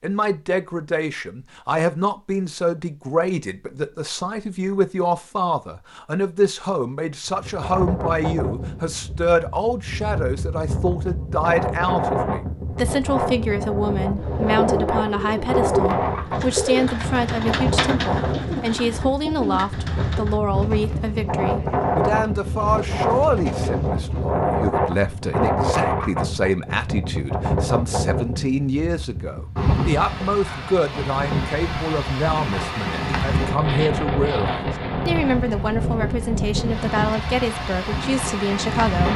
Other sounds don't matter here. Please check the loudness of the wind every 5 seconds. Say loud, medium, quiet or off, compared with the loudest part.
off, medium, loud, loud, loud, loud, loud, loud.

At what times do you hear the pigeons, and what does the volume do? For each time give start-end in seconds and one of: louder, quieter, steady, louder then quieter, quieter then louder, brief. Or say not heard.
14.2-24.3 quieter.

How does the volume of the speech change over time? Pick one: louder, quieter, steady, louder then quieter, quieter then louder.
steady.